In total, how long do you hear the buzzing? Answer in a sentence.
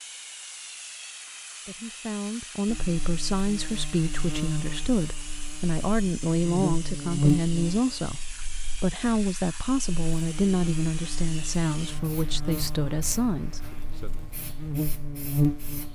You can hear the buzzing for 13 seconds altogether.